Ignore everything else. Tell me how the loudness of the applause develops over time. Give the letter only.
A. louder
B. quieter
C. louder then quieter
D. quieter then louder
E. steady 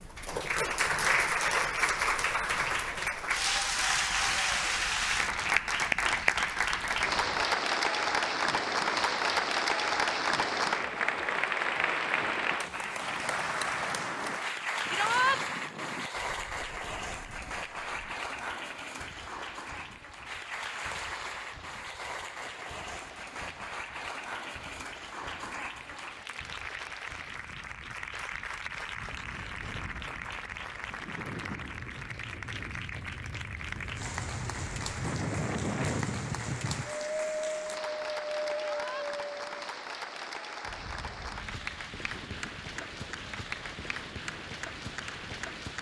B.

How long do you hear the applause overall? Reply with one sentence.
The applause can be heard for 46 seconds in total.